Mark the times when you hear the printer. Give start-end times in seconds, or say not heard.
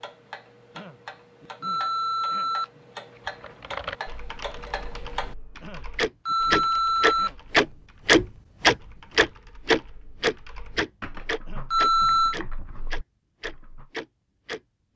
not heard.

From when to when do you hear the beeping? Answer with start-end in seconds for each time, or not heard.
1.6-2.7, 6.2-7.3, 11.7-12.3.